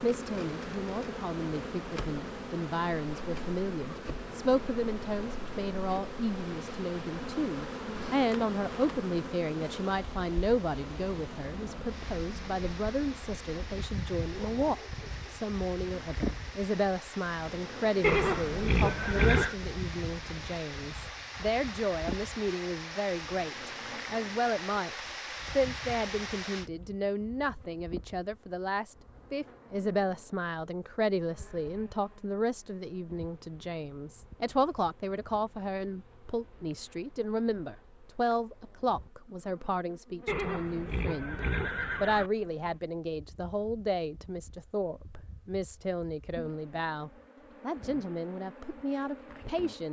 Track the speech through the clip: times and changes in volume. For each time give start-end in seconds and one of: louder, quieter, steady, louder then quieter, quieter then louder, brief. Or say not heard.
0.0-41.4 steady
42.0-49.8 steady.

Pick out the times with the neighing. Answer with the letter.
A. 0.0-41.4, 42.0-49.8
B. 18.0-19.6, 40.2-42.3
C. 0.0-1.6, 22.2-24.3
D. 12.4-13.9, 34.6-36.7
B.